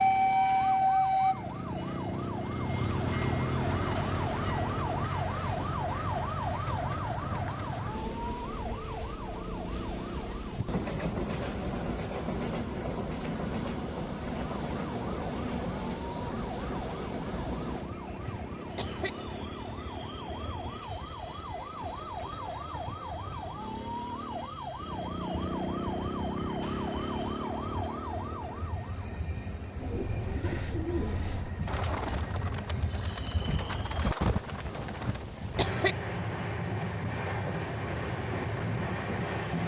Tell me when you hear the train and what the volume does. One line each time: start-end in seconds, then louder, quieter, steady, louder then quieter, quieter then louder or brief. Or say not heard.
0.0-39.6 quieter then louder.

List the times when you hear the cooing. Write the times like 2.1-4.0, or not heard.
29.8-35.2.